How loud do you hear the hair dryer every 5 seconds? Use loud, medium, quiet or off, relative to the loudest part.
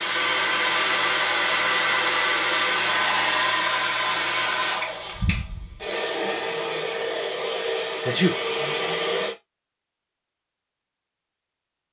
loud, medium, off.